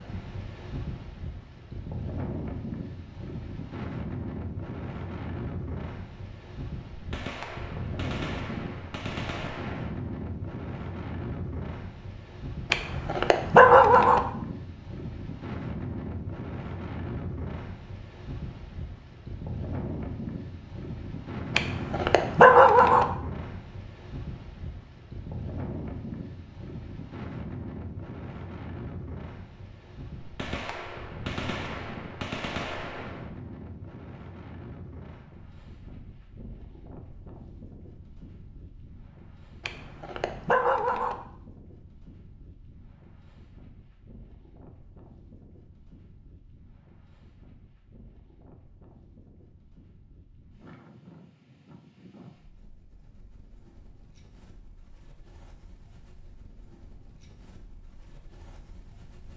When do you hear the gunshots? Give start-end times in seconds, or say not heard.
6.9-9.9, 30.2-33.4.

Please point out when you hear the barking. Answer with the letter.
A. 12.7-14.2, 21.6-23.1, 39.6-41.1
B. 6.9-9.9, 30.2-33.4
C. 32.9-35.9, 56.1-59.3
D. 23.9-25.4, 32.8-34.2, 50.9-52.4
A.